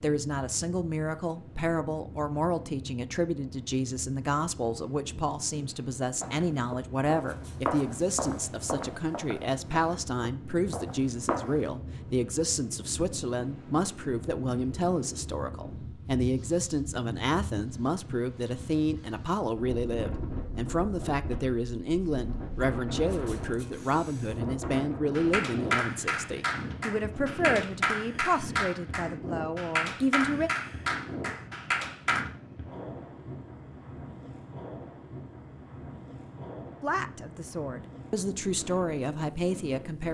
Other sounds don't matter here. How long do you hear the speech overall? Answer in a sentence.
The speech can be heard for 34 seconds in total.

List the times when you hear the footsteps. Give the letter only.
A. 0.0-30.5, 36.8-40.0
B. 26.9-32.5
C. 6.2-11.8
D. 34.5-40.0
C.